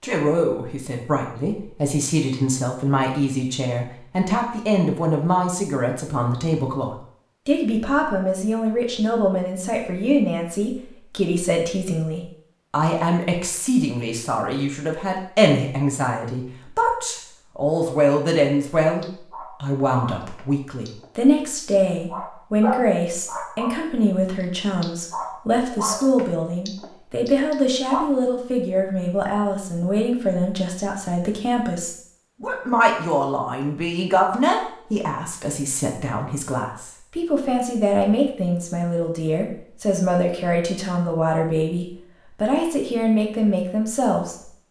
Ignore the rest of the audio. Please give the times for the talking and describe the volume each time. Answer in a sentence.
You can hear the talking from 0.0 to 44.5 s, at a steady volume.